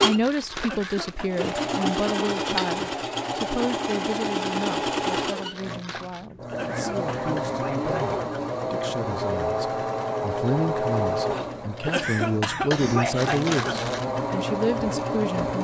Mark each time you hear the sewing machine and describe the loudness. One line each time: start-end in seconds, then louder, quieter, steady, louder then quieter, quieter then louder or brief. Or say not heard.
0.0-15.5 steady.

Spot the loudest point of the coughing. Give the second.
13 s.